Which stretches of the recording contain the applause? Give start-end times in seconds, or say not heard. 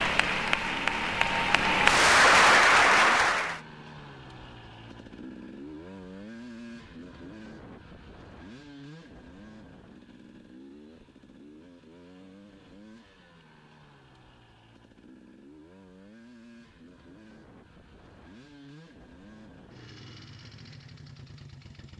0.0-3.6.